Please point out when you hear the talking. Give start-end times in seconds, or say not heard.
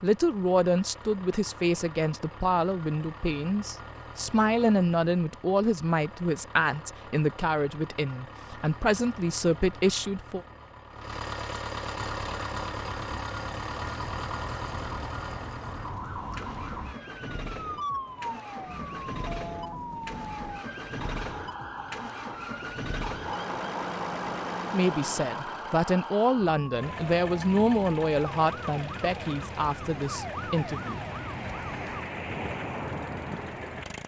0.0-10.4, 24.7-31.0.